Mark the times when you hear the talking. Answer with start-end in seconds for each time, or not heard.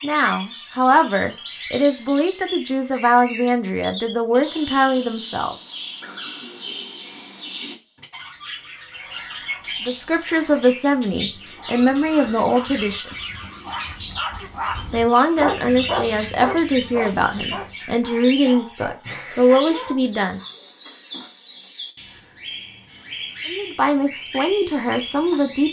0.0-5.5, 9.8-13.2, 14.9-20.4, 23.4-25.6.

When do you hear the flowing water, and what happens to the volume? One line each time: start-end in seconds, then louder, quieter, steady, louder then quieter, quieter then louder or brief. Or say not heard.
not heard.